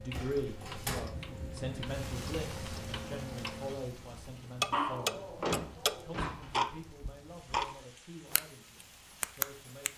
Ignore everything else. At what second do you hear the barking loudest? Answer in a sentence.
The loudest moment of the barking is at 5 seconds.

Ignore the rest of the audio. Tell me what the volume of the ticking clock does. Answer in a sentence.
The loudness of the ticking clock goes up.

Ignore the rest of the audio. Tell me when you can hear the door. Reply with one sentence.
The door can be heard from 0.1 to 1.1 s and from 5.2 to 6.7 s.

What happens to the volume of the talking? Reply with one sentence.
The volume of the talking goes down.